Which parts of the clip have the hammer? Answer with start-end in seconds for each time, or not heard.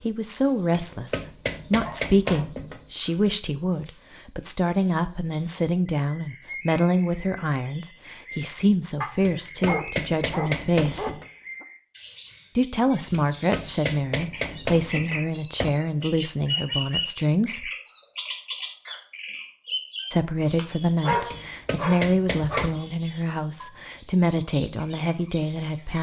0.7-2.9, 9.2-11.2, 13.1-15.8, 21.3-22.8.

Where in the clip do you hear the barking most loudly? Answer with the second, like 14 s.
21 s.